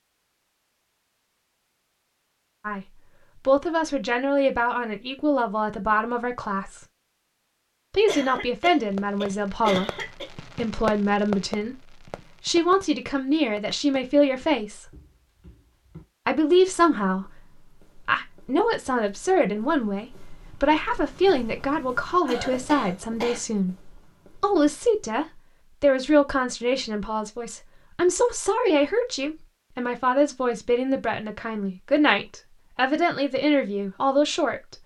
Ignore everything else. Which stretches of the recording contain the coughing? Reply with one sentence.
You can hear the coughing from 8.1 to 10.2 s and from 22.2 to 23.4 s.